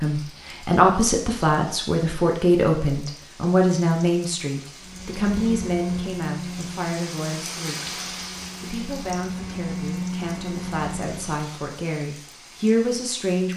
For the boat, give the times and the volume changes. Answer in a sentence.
The boat can be heard from 4.8 to 11.4 s, getting quieter then louder.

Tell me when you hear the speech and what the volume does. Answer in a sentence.
You can hear the speech from 0.0 to 7.9 s, getting quieter; and from 8.6 to 13.5 s, getting louder.